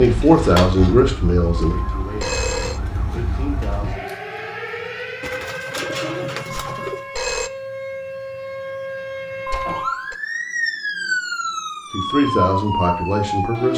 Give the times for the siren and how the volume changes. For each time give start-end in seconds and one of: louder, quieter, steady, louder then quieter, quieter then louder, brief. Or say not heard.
0.0-13.7 louder.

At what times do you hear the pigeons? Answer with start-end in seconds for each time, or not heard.
5.2-7.0.